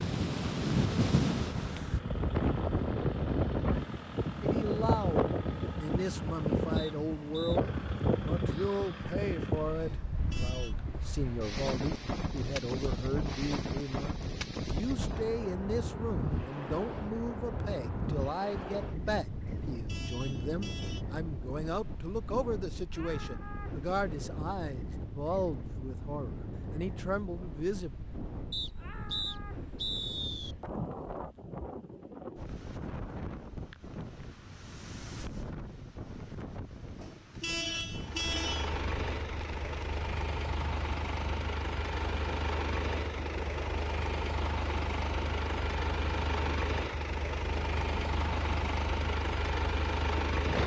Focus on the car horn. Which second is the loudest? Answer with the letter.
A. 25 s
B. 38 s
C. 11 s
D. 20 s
B.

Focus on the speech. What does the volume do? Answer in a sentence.
The loudness of the speech stays about the same.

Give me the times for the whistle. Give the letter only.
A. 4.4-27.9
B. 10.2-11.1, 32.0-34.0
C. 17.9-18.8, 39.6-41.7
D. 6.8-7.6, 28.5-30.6
D.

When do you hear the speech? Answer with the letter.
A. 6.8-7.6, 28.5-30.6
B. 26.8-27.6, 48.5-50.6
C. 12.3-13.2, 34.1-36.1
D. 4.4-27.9
D.